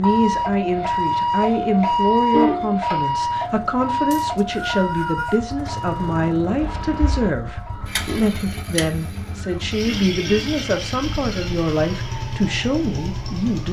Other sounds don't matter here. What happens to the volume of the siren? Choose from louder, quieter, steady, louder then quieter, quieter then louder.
quieter.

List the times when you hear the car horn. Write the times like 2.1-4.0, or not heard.
1.9-2.9, 6.6-7.3, 9.8-10.6.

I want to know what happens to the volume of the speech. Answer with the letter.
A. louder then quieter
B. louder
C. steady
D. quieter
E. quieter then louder
C.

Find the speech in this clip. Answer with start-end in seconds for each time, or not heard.
0.0-13.6.